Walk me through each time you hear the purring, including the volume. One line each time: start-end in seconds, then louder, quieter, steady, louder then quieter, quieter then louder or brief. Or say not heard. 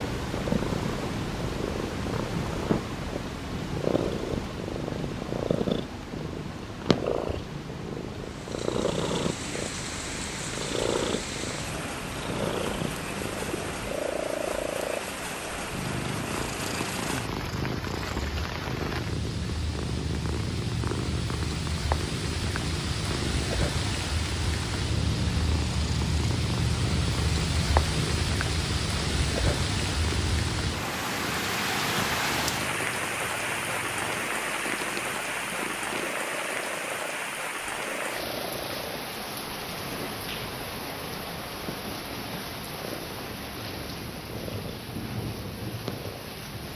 0.0-46.5 quieter.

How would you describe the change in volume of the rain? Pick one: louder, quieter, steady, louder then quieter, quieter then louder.
louder then quieter.